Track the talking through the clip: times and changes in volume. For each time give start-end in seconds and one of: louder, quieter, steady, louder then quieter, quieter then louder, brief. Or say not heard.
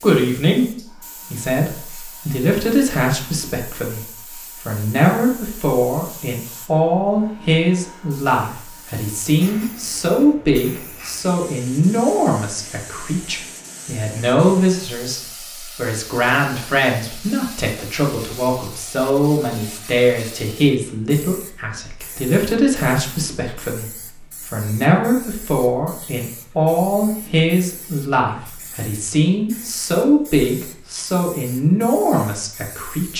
0.0-33.1 steady.